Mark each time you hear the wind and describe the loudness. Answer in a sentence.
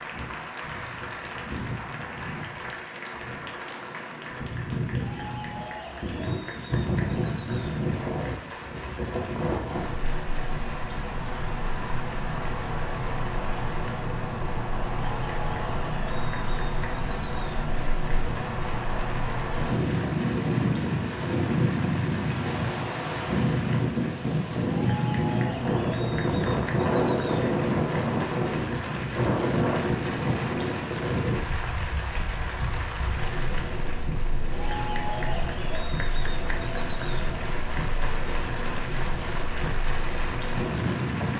You can hear the wind from 0.0 to 41.3 s, getting louder then quieter.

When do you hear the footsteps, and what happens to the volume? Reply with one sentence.
You can't hear the footsteps here.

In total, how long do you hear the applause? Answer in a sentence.
The applause can be heard for 41 seconds in total.